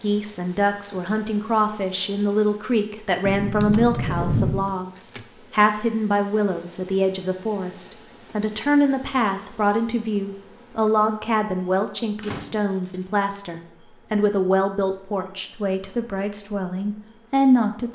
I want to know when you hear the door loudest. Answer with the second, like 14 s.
4 s.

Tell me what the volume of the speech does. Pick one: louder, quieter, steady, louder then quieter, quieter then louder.
steady.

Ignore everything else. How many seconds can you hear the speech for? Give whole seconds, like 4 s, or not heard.
18 s.